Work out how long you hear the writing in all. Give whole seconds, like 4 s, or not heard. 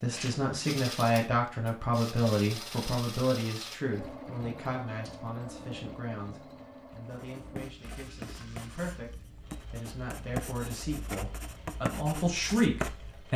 6 s.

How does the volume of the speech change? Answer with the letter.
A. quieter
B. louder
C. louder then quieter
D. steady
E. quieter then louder
E.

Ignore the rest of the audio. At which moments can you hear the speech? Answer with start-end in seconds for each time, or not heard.
0.0-13.3.